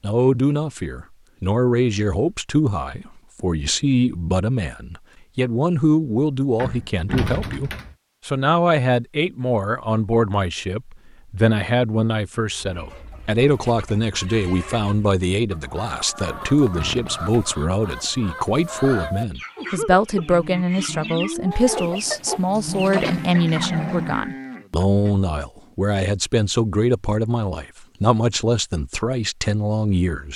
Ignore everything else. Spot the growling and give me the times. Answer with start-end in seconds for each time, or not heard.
22.5-24.2.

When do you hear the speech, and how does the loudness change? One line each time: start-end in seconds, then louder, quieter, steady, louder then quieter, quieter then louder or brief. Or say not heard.
0.0-30.3 steady.